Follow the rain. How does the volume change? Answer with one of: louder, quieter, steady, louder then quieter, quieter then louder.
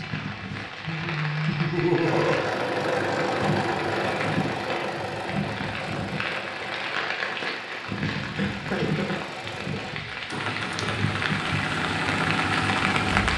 steady.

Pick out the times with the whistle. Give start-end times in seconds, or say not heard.
not heard.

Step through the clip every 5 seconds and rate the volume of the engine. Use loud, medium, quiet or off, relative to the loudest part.
loud, medium, loud.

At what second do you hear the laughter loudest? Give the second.
2 s.